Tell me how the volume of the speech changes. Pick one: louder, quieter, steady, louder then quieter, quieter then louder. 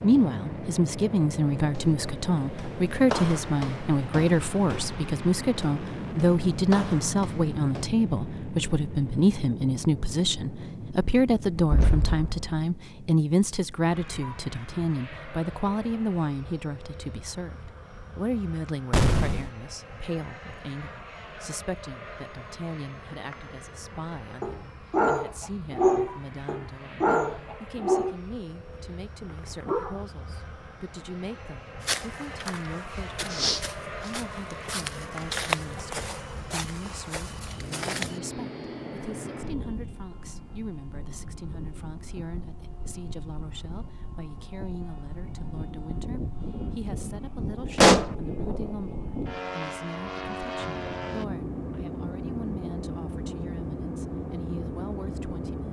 quieter.